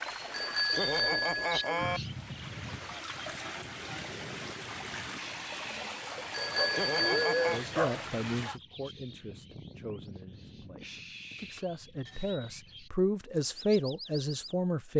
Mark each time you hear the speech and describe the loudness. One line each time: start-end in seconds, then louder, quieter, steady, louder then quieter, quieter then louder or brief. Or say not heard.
7.5-14.9 quieter then louder.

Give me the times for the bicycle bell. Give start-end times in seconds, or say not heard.
0.3-2.0, 6.3-7.7, 11.3-12.6.